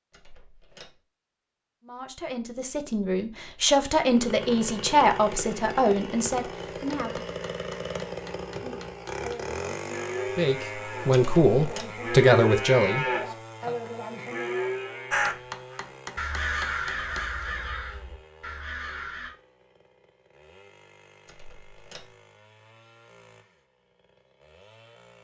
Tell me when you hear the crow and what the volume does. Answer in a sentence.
You can hear the crow from 15.1 to 19.3 s, getting louder then quieter.